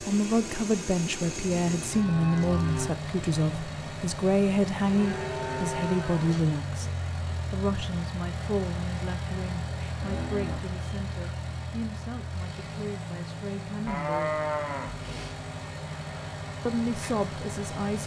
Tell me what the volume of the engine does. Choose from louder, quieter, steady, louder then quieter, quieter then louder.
steady.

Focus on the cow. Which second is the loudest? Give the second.
14 s.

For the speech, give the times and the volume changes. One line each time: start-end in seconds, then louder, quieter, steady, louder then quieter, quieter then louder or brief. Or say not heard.
0.0-14.4 quieter
16.6-18.0 brief.